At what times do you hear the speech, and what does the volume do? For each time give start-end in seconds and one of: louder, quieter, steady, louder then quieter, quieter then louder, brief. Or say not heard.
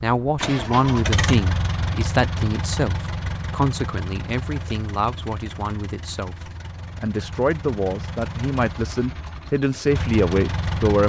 0.0-11.0 quieter then louder.